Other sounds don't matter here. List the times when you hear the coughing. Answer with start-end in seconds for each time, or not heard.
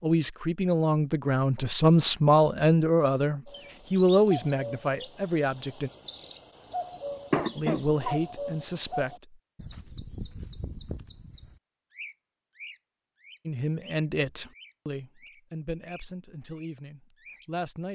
7.3-8.2.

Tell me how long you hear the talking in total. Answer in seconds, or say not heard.
12 s.